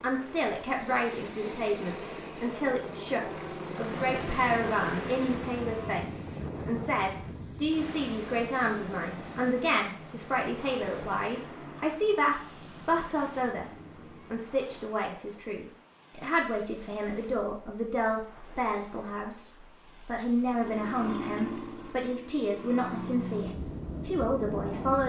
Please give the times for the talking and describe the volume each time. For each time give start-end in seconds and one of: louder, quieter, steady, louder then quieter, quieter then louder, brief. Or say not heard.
0.0-25.0 steady.